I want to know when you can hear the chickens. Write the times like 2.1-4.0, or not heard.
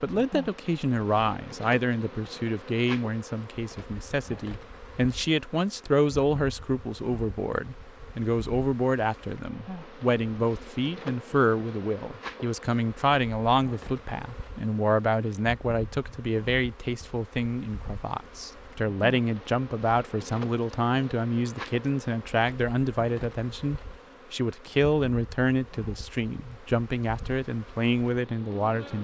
not heard.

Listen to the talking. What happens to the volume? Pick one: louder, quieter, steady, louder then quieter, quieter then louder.
steady.